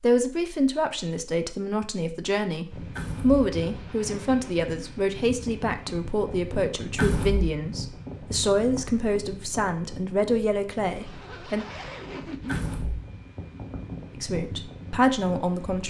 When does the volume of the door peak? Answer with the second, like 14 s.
7 s.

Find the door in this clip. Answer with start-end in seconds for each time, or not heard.
3.0-3.5, 7.0-7.5, 12.4-13.1.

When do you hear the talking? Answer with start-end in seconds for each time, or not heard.
0.0-11.7, 14.2-15.8.